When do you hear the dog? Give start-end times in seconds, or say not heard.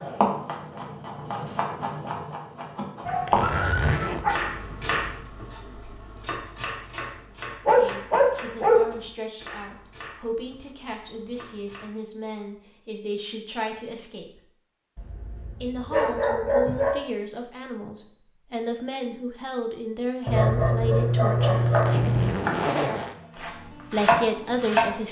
3.0-4.3, 7.7-8.8, 14.9-16.9, 20.2-22.4.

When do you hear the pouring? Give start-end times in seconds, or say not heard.
not heard.